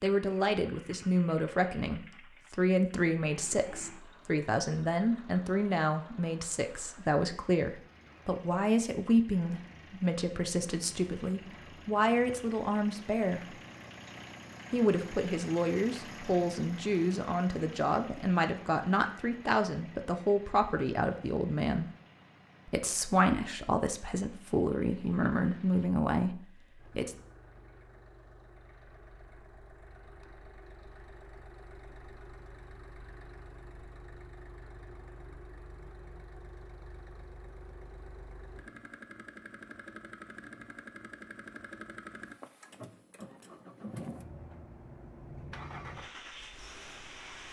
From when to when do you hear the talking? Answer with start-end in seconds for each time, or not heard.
0.0-13.6, 14.7-21.9, 22.6-27.1.